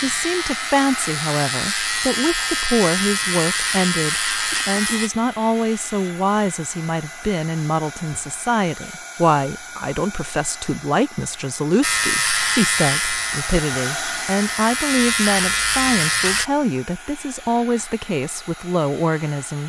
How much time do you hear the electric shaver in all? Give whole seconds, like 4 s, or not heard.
10 s.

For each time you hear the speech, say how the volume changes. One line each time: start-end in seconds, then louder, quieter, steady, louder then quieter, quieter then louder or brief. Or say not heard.
0.0-19.6 steady.